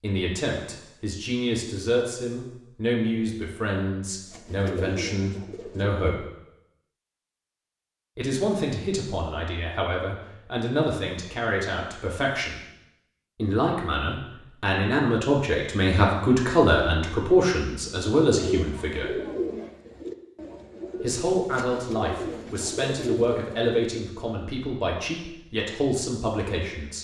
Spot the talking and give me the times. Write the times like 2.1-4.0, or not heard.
0.0-6.2, 8.2-12.6, 13.3-19.1, 21.0-27.0.